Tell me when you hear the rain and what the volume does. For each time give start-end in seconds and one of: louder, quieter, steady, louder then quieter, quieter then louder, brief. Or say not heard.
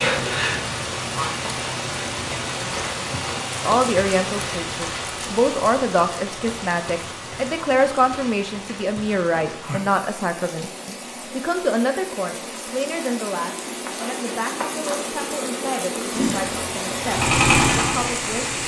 0.0-18.6 quieter then louder.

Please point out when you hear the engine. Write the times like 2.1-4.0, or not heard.
16.1-18.6.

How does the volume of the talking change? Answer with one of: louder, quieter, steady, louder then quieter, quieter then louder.
quieter.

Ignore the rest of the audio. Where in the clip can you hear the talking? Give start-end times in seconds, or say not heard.
3.6-18.6.